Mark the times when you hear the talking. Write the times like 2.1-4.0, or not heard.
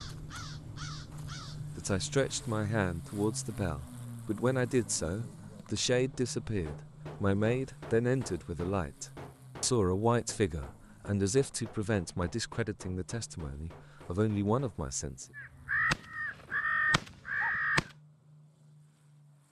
1.8-15.2.